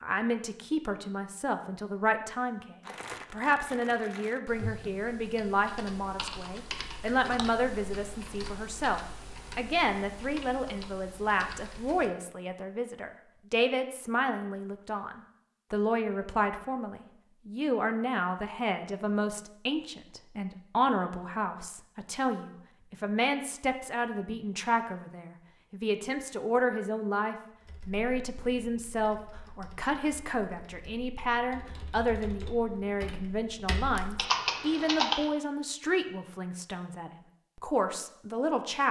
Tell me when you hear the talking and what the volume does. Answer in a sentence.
The talking can be heard from 0.0 to 38.8 s, at a steady volume.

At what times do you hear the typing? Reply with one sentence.
The typing can be heard from 4.5 to 12.1 s and from 27.6 to 35.3 s.